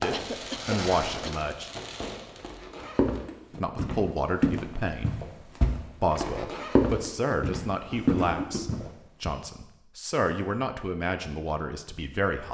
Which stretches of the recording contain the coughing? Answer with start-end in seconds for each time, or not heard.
0.1-1.4, 7.9-8.9.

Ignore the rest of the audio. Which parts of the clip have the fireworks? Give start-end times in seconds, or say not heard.
0.0-3.0.